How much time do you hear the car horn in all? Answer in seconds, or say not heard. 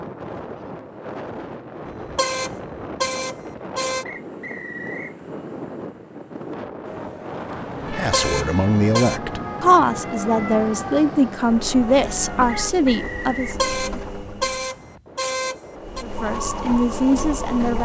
6 s.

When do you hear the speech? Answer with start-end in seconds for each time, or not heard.
7.8-13.6, 16.0-17.7.